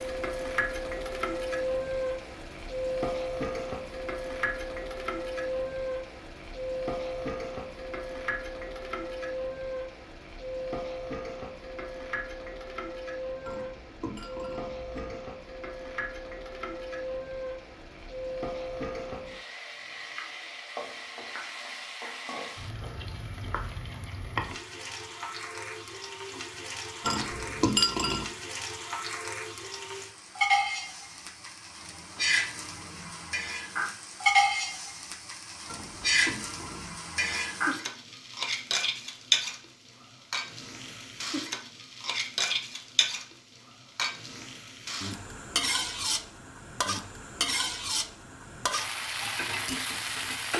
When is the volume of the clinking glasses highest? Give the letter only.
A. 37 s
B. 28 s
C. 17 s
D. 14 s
B.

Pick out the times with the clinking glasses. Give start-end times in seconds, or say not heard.
13.4-15.2, 27.0-28.2, 35.6-37.0.